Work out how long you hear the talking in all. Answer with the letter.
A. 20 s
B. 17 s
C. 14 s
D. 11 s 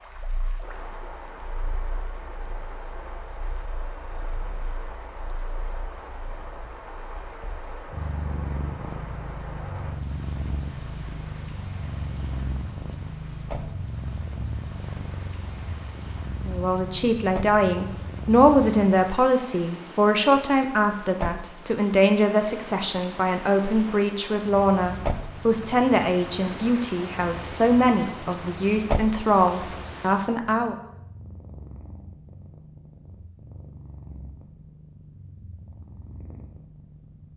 C.